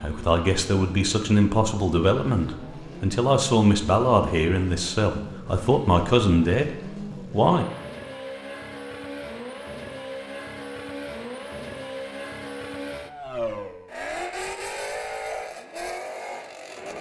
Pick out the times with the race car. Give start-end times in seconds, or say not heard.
0.0-16.9.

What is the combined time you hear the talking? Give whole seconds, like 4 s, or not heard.
8 s.